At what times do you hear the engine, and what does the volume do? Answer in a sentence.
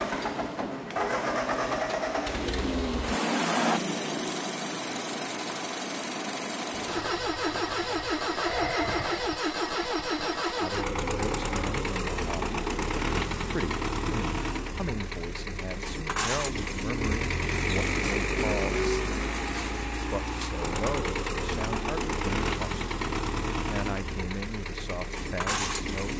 You can hear the engine from 0.0 to 26.1 s, at a steady volume.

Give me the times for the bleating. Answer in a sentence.
The bleating can be heard from 6.8 to 9.3 s.